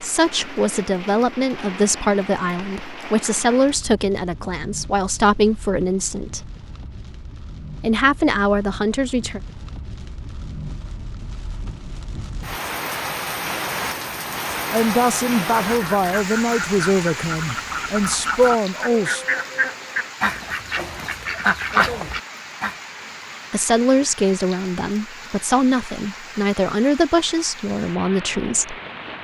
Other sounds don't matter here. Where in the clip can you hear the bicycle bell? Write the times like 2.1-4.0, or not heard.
not heard.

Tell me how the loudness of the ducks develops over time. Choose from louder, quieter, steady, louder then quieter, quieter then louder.
louder.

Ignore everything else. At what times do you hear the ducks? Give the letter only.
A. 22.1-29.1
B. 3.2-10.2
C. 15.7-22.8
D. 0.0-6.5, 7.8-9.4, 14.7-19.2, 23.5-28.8
C.